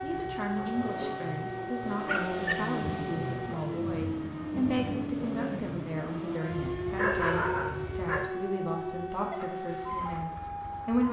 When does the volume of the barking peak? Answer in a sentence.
The volume of the barking peaks at 7 seconds.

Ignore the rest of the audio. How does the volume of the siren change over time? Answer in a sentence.
The volume of the siren stays about the same.